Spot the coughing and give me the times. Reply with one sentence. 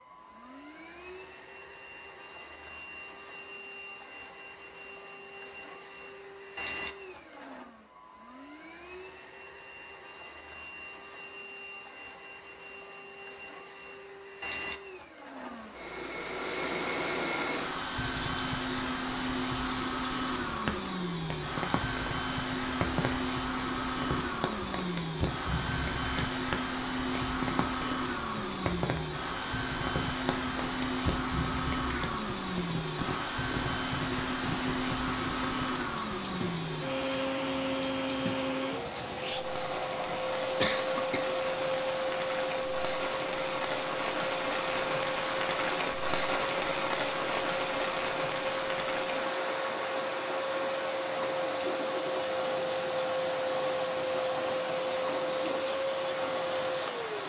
The coughing can be heard from 40.5 to 41.2 s.